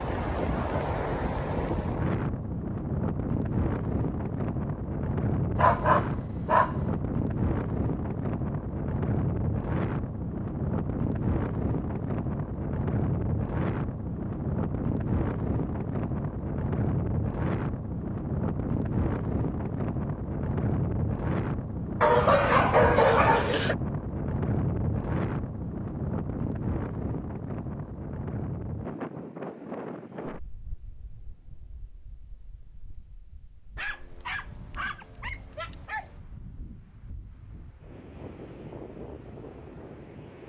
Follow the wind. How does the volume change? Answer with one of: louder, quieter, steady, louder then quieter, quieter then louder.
quieter.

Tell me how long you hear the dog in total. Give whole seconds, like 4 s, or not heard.
5 s.